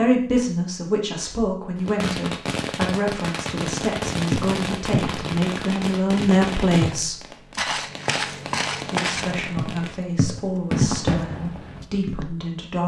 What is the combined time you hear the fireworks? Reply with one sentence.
You can hear the fireworks for 10 seconds altogether.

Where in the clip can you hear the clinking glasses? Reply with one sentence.
The clinking glasses can't be heard in this clip.